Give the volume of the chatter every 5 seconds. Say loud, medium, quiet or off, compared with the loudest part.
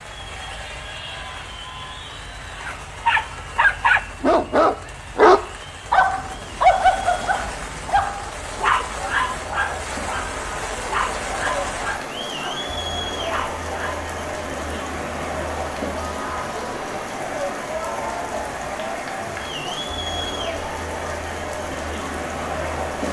medium, medium, loud, loud, loud.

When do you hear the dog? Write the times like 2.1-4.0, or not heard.
2.6-12.4, 13.2-14.1.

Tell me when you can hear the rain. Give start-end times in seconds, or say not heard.
0.0-23.0.